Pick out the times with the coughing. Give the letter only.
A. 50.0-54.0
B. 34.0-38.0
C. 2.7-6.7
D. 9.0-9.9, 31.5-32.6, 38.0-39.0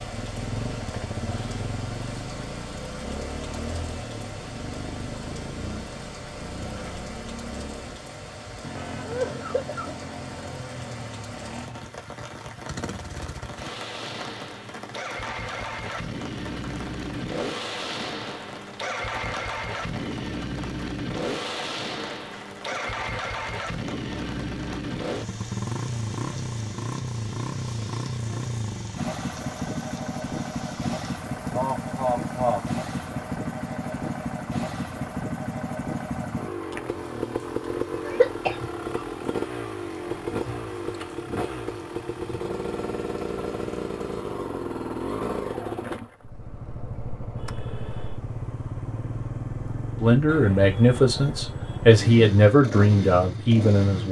D.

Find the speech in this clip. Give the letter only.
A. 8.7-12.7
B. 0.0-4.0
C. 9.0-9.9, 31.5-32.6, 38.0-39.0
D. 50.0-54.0
D.